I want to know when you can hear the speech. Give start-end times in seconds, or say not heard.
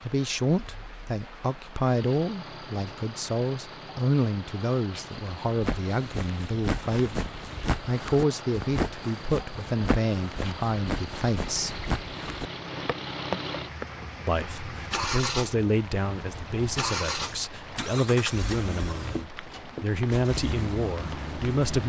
0.0-11.8, 14.2-21.8.